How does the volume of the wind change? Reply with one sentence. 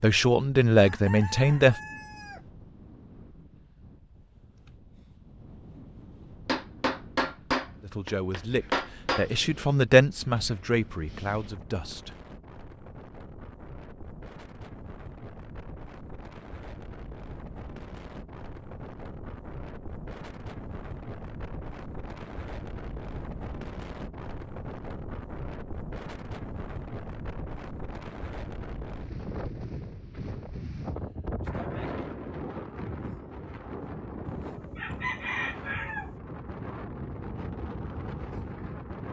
The volume of the wind goes up.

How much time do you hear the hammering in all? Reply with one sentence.
You can hear the hammering for 3 seconds altogether.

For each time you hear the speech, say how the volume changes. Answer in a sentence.
The speech can be heard briefly from 0.0 to 1.8 s; and from 7.8 to 12.2 s, getting louder then quieter.